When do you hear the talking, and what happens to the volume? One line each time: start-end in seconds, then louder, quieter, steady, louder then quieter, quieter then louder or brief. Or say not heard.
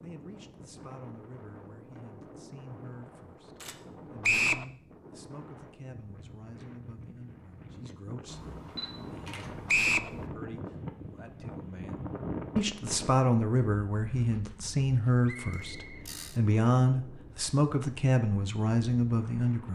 0.0-19.6 louder.